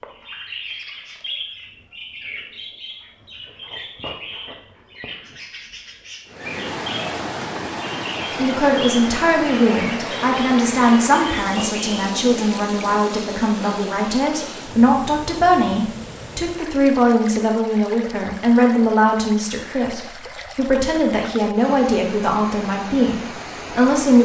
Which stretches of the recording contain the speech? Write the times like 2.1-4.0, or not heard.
8.3-24.2.